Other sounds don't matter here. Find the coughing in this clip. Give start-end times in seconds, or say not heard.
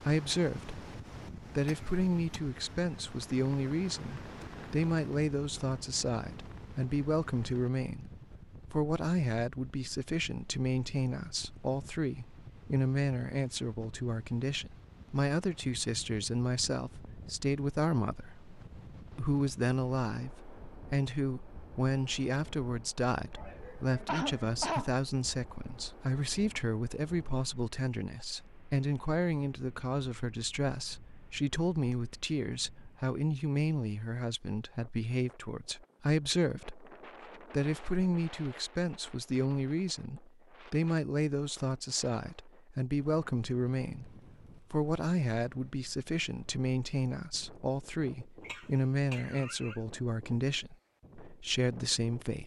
1.6-2.4, 23.4-24.9, 48.4-49.8.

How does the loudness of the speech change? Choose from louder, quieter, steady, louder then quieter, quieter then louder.
steady.